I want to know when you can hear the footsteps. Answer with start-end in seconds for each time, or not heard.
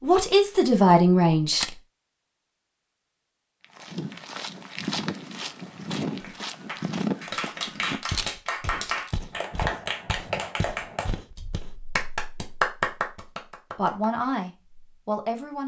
3.6-12.1.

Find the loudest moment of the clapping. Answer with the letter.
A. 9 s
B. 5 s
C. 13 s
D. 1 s
C.